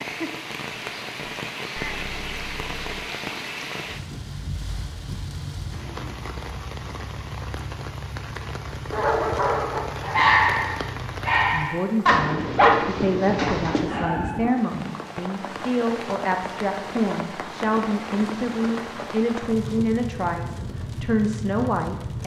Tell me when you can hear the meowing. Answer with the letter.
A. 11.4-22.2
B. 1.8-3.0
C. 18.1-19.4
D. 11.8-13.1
B.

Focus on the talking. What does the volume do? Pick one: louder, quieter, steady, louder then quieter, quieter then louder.
steady.